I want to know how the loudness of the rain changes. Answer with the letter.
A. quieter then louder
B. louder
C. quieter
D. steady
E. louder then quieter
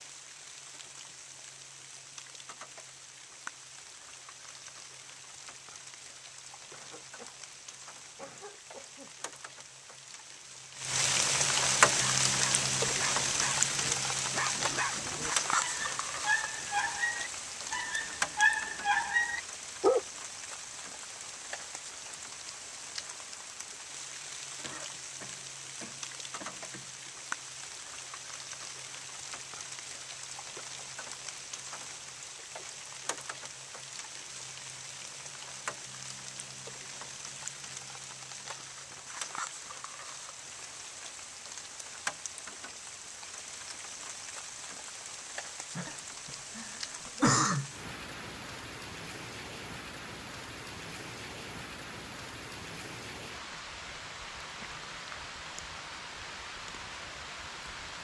E.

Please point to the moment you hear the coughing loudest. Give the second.
47 s.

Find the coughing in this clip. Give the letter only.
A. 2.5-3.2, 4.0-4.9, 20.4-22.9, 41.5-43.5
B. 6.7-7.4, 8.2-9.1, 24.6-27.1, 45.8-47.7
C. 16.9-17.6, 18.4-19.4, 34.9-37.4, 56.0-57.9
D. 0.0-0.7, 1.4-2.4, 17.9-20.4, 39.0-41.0
B.